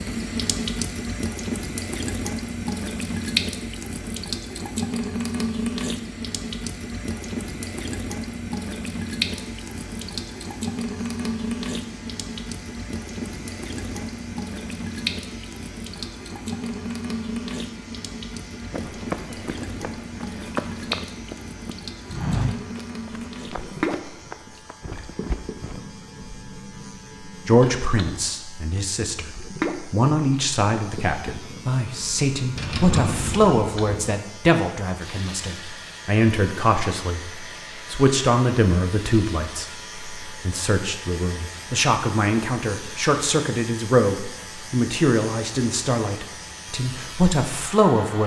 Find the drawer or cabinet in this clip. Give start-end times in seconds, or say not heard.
32.5-34.1.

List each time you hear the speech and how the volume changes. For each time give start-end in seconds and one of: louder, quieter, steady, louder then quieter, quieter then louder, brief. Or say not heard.
27.3-48.2 steady.